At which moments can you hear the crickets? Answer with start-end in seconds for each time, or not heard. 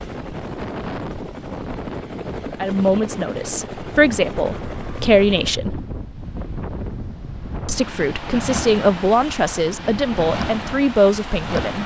not heard.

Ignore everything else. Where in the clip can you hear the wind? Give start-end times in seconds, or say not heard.
0.0-11.8.